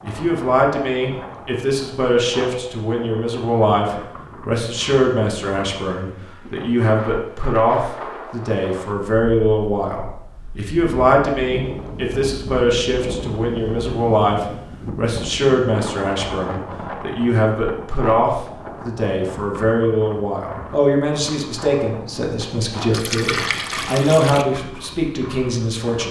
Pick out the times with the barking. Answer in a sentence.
The barking can't be heard in this clip.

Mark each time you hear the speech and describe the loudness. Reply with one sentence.
You can hear the speech from 0.0 to 26.0 s, at a steady volume.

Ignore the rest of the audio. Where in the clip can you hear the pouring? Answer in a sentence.
The pouring can be heard from 22.9 to 24.4 s.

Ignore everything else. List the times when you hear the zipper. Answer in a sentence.
The zipper can't be heard in this clip.